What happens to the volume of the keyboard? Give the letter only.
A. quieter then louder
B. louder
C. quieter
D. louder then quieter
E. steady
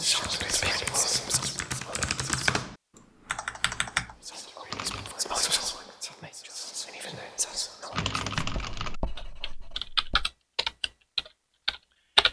B.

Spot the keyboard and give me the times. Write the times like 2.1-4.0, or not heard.
0.0-5.2, 7.9-12.2.